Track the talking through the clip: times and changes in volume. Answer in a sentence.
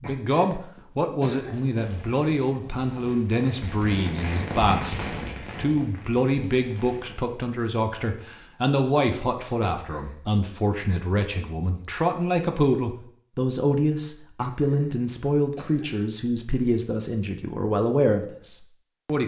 You can hear the talking from 0.0 to 19.2 s, at a steady volume.